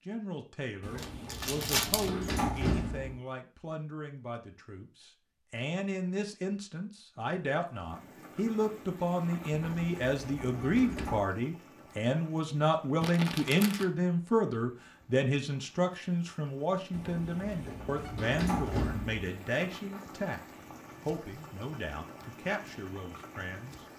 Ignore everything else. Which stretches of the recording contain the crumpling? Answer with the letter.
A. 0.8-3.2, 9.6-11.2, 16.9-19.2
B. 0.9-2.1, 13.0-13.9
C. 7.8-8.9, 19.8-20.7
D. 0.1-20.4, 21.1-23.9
B.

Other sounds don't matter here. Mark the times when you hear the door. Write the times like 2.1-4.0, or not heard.
0.8-3.2, 9.6-11.2, 16.9-19.2.